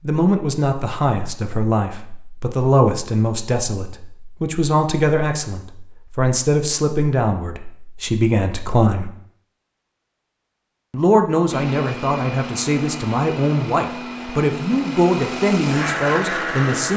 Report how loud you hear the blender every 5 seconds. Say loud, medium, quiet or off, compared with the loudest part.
off, off, medium, loud.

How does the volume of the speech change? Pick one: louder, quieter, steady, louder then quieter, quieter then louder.
steady.